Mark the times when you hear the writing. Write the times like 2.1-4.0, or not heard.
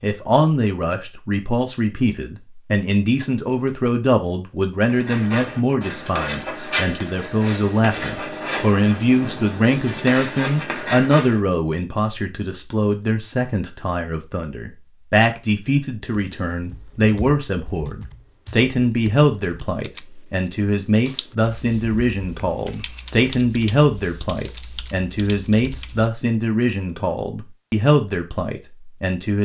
4.8-11.4.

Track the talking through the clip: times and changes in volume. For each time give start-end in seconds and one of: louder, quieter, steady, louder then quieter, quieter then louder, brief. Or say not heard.
0.0-29.3 steady.